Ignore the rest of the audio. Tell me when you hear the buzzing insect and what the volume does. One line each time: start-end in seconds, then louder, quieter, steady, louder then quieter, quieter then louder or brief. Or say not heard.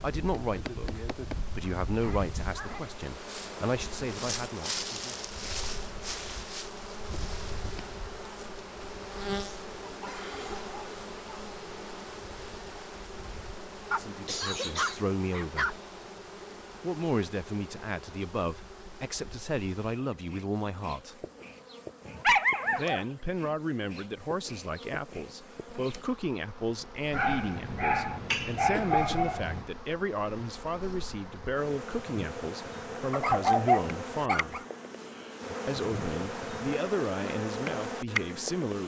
0.0-38.8 quieter then louder.